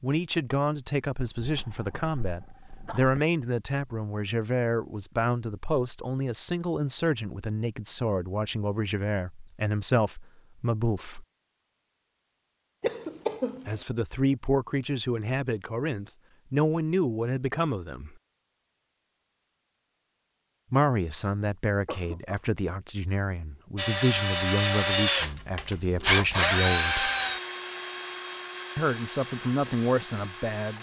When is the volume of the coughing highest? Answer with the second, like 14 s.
13 s.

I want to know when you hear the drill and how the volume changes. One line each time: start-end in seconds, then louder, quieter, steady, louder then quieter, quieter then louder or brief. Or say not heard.
23.8-30.7 quieter.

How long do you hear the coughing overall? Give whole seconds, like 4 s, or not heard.
3 s.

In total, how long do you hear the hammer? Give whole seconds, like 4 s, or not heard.
not heard.